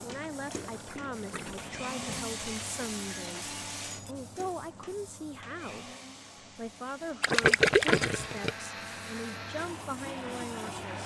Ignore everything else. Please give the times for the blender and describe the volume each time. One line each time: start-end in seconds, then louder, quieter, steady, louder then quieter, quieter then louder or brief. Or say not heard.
0.0-11.0 quieter then louder.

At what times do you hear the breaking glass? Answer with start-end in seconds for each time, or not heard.
2.1-4.2.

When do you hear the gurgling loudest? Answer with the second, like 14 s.
8 s.